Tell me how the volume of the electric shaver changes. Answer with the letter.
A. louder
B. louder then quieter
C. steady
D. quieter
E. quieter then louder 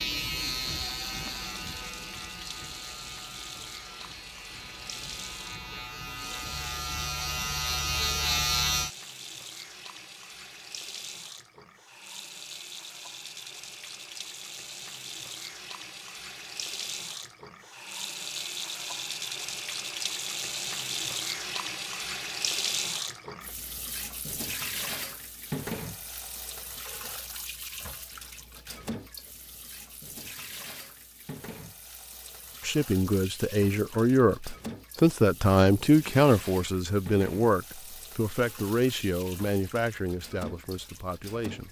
E.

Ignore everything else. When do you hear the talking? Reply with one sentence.
The talking can be heard from 32.6 to 41.6 s.